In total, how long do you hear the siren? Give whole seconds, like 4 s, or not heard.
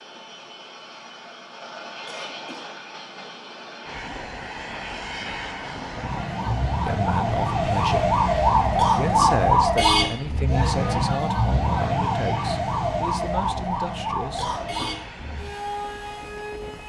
11 s.